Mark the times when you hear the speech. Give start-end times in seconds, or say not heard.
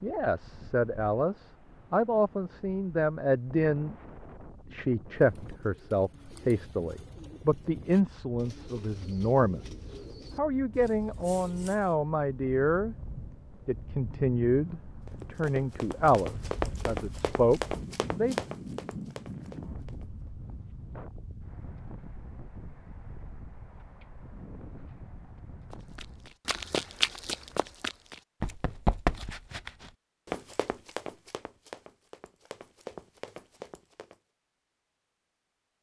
0.0-4.0, 4.7-12.9, 13.7-18.4.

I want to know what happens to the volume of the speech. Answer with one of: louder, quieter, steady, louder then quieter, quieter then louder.
steady.